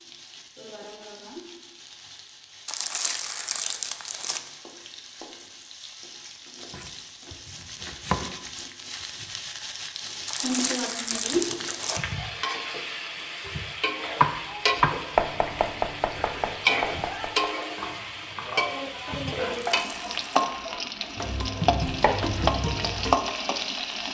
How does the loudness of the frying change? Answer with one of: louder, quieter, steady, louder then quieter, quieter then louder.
louder.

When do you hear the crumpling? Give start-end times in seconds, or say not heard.
2.6-4.5, 10.2-12.0, 19.5-20.2.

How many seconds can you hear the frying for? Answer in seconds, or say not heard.
24 s.